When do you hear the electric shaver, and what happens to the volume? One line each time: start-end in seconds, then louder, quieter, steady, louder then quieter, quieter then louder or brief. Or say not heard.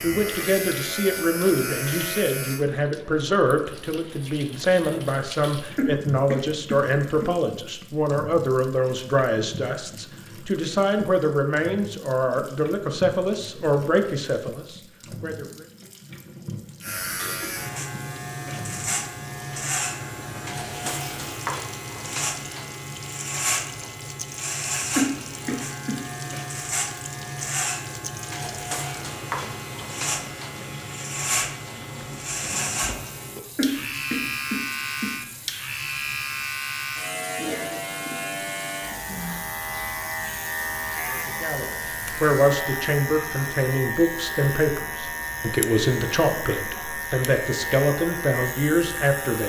0.0-2.6 brief
16.8-49.4 steady.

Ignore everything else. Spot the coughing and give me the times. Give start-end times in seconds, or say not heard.
5.8-7.2, 24.9-26.0, 33.5-35.1.